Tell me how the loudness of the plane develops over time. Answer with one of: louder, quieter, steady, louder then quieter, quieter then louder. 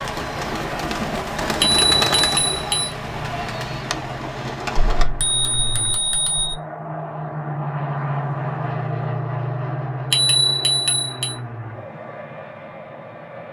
louder then quieter.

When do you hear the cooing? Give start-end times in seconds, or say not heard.
0.0-5.0.